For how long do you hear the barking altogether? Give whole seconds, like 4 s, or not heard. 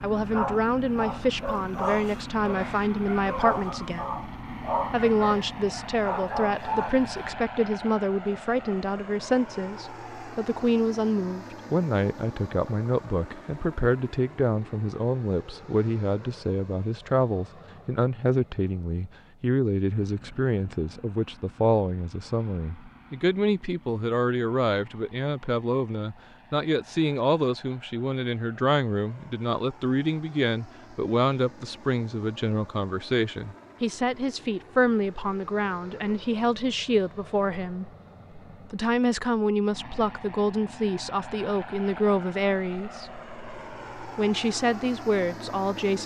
7 s.